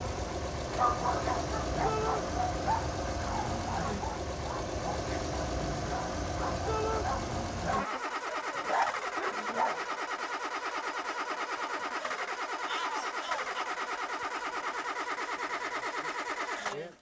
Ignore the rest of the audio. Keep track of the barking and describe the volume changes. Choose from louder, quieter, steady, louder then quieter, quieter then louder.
quieter then louder.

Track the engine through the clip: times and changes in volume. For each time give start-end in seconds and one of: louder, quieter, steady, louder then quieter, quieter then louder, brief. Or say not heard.
0.0-16.9 steady.